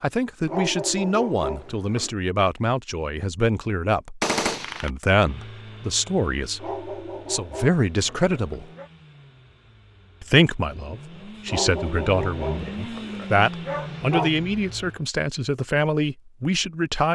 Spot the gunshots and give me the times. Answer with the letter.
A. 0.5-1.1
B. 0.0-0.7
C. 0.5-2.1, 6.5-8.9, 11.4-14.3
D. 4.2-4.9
D.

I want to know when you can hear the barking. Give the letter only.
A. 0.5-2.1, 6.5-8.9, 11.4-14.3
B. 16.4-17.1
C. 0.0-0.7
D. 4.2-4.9
A.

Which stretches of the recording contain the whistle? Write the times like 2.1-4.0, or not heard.
not heard.